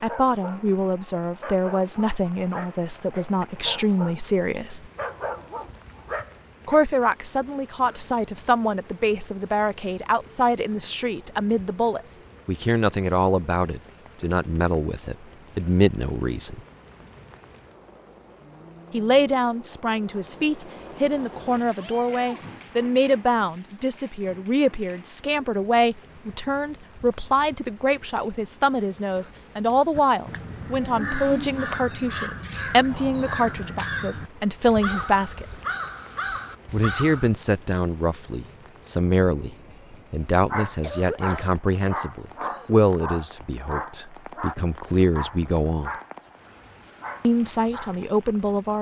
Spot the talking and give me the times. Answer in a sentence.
You can hear the talking from 0.0 to 4.8 s, from 6.7 to 16.6 s, from 18.9 to 35.5 s, from 36.7 to 45.9 s and from 47.2 to 48.7 s.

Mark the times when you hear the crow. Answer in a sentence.
You can hear the crow from 29.9 to 37.3 s.